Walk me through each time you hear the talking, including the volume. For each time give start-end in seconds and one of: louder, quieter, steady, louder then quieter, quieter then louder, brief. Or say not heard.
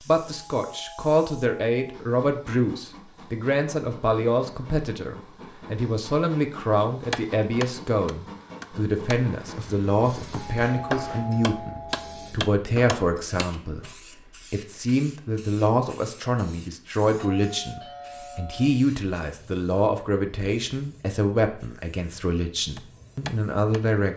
0.0-24.1 steady.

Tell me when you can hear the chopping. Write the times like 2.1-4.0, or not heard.
7.1-13.5, 22.8-23.9.